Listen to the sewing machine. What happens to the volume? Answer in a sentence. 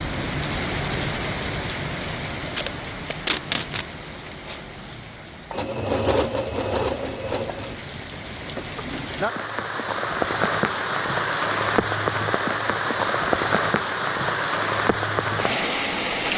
The volume of the sewing machine goes up, then down.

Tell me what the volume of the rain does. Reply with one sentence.
The volume of the rain goes down, then up.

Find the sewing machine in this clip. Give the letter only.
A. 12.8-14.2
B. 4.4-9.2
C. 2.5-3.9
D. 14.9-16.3
B.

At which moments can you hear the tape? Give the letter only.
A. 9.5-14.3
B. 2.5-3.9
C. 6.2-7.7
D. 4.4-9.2
B.